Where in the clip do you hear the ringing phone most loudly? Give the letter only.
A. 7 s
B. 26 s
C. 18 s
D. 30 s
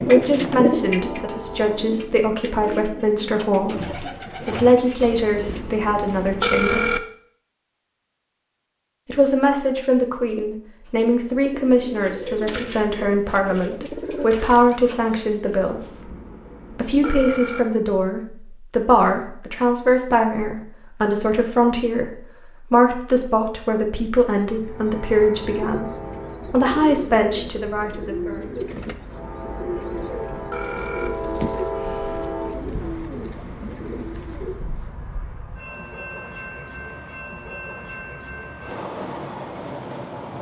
A.